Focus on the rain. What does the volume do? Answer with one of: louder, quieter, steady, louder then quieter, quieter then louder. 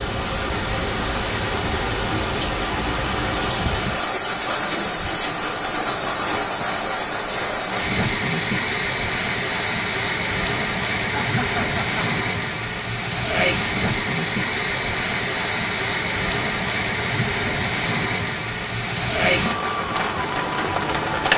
steady.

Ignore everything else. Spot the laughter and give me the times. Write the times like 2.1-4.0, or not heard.
11.1-12.1.